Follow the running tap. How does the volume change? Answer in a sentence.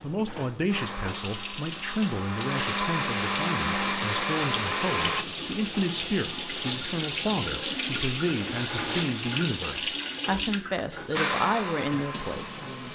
The loudness of the running tap goes up, then down.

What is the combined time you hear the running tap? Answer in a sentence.
The running tap can be heard for 13 seconds in total.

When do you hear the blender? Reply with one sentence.
The blender can be heard from 0.0 to 5.2 s and from 11.2 to 12.9 s.